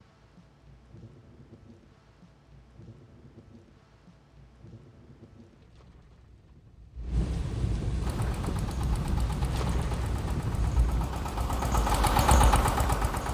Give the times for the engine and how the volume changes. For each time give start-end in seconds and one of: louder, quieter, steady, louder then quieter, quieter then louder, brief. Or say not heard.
8.0-13.2 louder.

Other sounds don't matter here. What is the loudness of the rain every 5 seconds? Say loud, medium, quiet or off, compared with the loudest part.
quiet, loud, loud.